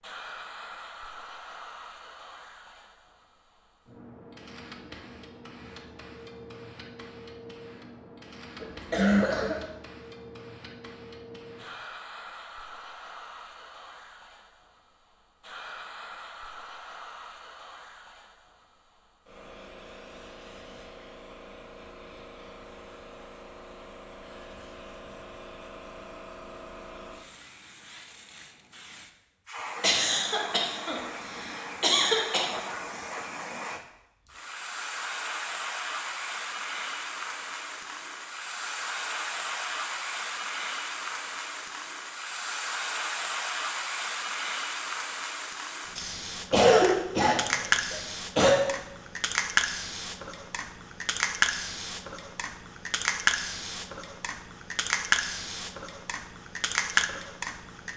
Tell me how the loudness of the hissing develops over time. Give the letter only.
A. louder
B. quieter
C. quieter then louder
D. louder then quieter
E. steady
A.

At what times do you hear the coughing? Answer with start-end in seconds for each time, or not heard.
8.6-9.7, 29.8-32.5, 46.5-48.5.